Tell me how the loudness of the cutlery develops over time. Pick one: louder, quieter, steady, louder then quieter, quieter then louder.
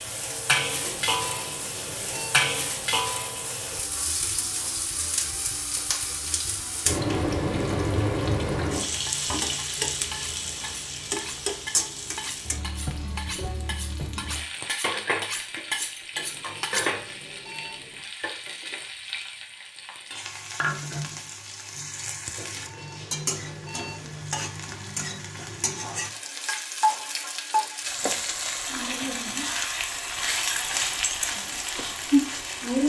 louder.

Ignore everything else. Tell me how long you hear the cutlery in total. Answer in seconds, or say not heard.
8 s.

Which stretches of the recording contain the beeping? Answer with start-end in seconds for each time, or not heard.
0.8-2.3, 16.1-18.0, 22.4-24.2.